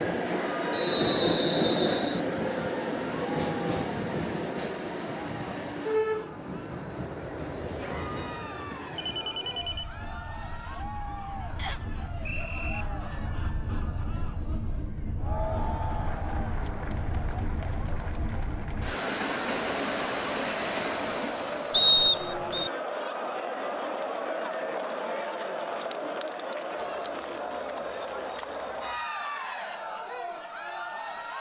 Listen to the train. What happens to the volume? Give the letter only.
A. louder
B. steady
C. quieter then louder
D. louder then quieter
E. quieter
C.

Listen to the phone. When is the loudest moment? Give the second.
9 s.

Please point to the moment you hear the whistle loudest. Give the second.
22 s.